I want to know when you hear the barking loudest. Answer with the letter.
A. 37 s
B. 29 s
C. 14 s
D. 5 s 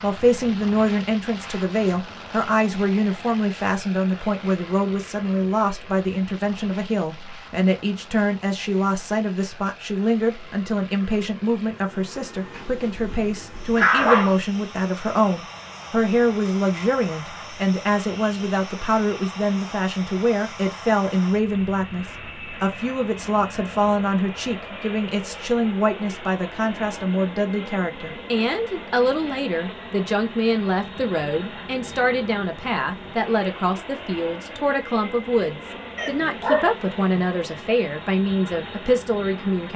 C.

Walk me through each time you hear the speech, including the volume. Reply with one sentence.
The speech can be heard from 0.0 to 39.7 s, at a steady volume.